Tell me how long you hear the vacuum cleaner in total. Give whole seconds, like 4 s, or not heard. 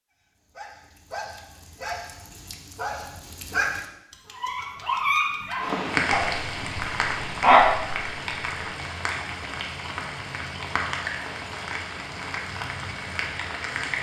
not heard.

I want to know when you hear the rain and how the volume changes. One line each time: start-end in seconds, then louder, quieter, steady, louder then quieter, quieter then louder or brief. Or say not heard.
5.5-13.9 quieter.